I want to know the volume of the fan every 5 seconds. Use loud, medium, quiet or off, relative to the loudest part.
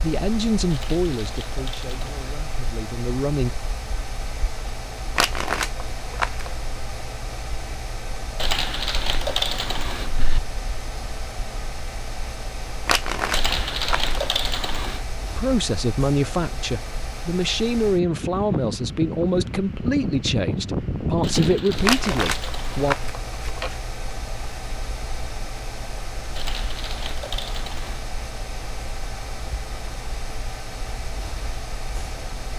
medium, medium, medium, loud, loud, medium, medium.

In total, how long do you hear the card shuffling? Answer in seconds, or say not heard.
5 s.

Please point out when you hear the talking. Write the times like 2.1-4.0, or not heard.
0.0-3.5, 15.3-22.9.